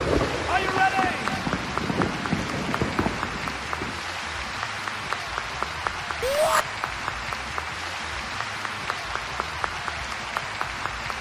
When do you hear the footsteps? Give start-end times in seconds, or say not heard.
not heard.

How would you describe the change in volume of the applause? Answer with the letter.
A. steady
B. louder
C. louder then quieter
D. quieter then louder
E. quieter
A.